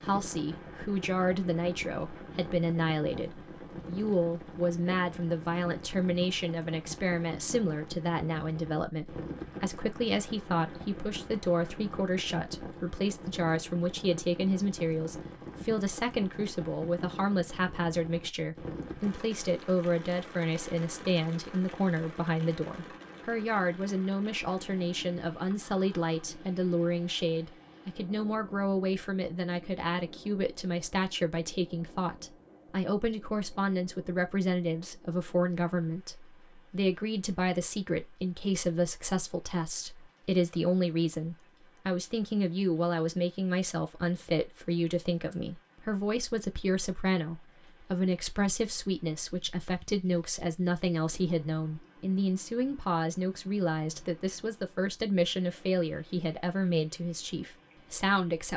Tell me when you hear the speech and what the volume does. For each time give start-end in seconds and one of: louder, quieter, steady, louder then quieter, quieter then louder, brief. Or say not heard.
0.0-58.5 steady.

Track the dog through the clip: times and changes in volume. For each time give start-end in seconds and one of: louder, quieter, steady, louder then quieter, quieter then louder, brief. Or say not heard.
not heard.